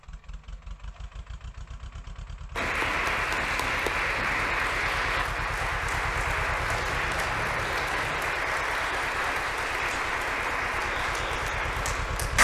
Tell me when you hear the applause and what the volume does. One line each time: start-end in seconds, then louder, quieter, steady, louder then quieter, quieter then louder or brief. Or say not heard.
2.5-12.3 steady.